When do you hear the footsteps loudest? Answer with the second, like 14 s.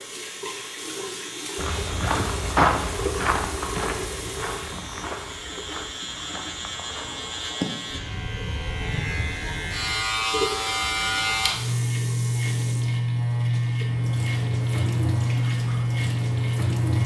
3 s.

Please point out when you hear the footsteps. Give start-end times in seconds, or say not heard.
1.6-7.5.